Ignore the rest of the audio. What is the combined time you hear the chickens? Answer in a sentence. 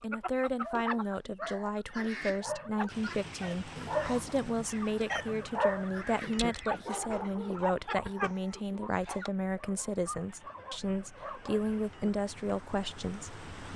The chickens can be heard for 9 seconds in total.